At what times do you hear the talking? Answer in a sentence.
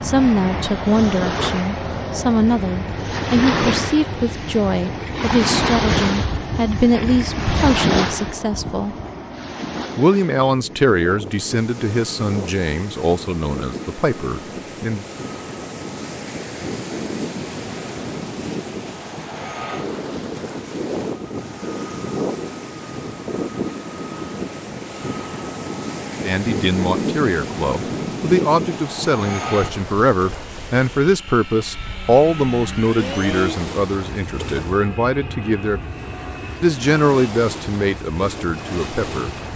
You can hear the talking from 0.0 to 8.9 s, from 9.9 to 15.1 s, from 26.2 to 35.8 s and from 36.6 to 39.4 s.